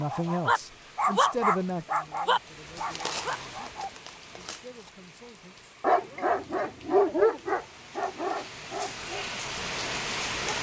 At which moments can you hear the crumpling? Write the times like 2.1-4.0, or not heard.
2.9-4.9.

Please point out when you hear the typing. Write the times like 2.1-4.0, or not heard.
not heard.